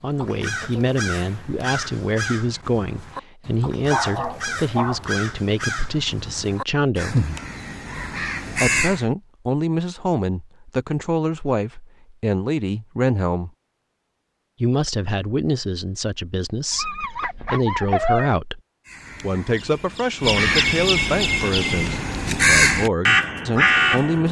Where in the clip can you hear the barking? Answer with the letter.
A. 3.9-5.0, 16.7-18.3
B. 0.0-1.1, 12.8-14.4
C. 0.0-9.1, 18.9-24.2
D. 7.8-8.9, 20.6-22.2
A.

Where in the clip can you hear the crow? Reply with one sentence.
You can hear the crow from 0.0 to 9.1 s and from 18.9 to 24.2 s.